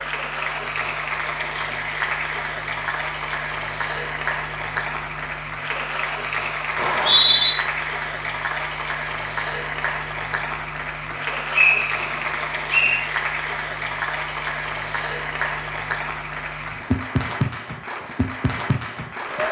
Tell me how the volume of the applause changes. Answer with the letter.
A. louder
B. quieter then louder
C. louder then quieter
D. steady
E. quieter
D.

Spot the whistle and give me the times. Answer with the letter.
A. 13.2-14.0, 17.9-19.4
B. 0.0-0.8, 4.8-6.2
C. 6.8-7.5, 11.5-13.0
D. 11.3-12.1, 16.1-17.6
C.